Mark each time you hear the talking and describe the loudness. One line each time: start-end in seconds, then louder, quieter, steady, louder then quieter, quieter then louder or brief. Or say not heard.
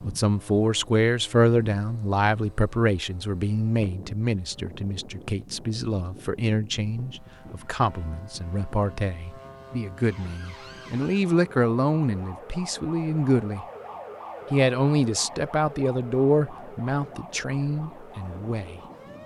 0.1-13.7 quieter then louder
14.5-18.8 quieter.